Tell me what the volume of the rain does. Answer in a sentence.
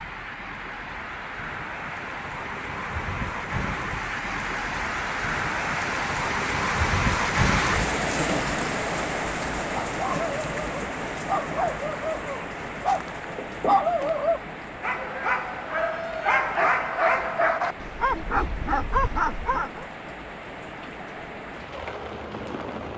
The volume of the rain goes up, then down.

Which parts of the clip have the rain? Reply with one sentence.
The rain can be heard from 0.0 to 22.9 s.